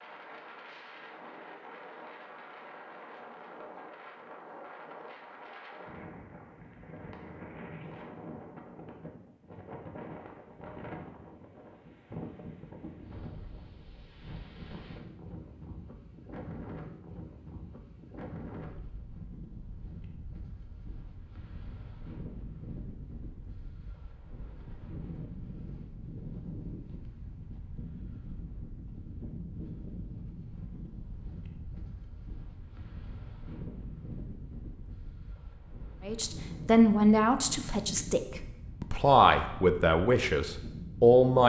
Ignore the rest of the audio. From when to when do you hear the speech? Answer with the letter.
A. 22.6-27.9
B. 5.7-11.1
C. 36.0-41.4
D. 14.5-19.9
C.